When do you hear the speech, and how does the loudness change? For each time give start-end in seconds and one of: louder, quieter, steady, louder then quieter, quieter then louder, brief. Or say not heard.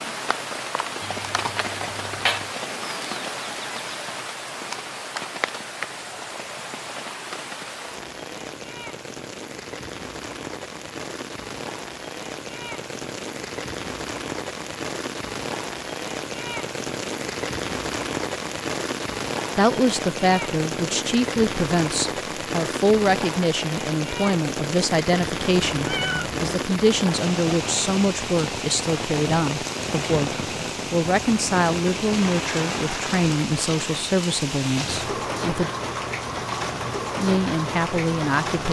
19.6-35.7 steady
37.1-38.6 brief.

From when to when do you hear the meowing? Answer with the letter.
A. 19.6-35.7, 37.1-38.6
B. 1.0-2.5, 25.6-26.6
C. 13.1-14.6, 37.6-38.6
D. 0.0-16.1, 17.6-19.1
B.